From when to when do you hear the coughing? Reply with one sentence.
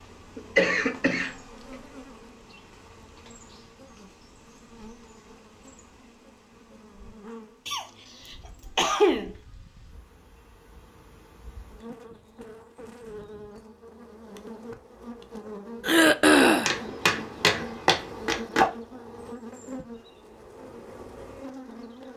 You can hear the coughing from 0.3 to 1.8 s, from 7.7 to 9.3 s and from 15.8 to 16.8 s.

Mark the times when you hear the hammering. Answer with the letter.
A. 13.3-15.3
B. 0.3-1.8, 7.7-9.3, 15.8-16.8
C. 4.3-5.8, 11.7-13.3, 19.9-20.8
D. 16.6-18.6
D.